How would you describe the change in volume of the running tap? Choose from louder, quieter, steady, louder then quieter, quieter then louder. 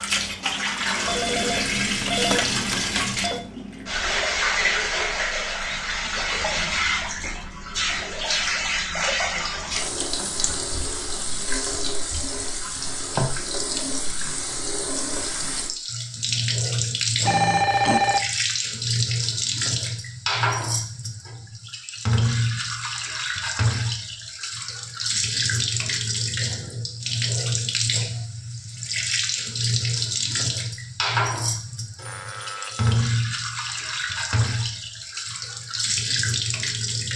steady.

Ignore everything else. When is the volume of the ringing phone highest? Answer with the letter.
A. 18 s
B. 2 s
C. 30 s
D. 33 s
A.